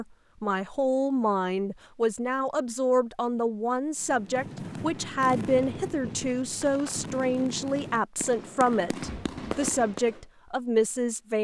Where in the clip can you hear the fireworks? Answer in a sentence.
The fireworks can be heard from 4.0 to 10.2 s.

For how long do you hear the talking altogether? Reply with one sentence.
You can hear the talking for 11 seconds altogether.